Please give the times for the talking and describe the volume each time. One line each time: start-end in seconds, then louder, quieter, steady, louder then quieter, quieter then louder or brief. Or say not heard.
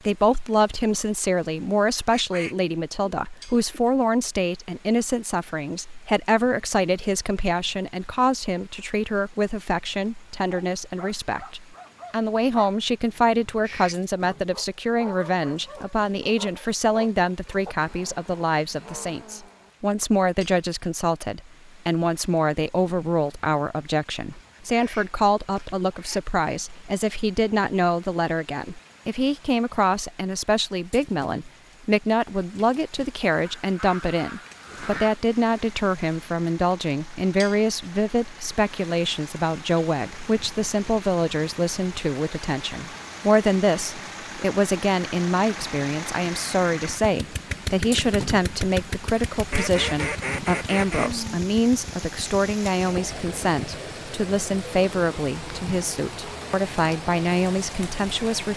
0.1-58.5 steady.